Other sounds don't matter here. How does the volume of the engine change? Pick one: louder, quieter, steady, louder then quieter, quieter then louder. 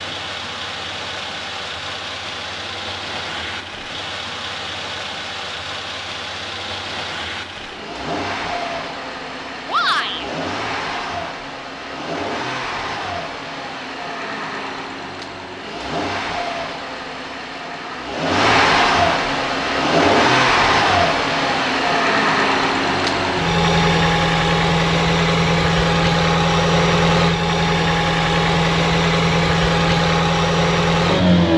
louder.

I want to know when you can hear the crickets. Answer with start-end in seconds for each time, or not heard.
not heard.